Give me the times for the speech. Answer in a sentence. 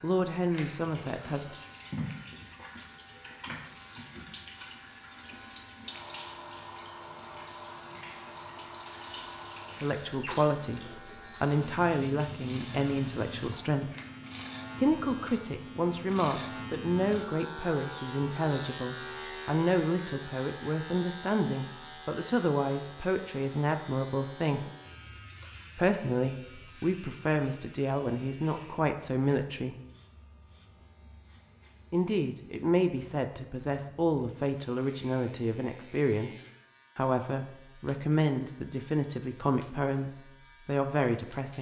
You can hear the speech from 0.0 to 1.6 s, from 9.8 to 13.9 s, from 14.8 to 24.6 s, from 25.8 to 29.8 s, from 31.9 to 36.4 s and from 37.0 to 41.5 s.